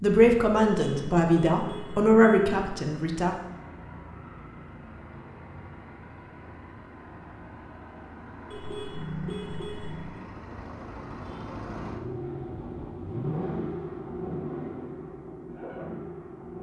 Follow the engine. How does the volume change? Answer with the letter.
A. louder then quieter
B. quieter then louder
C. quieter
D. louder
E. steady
D.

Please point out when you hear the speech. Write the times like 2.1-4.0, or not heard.
0.0-3.3.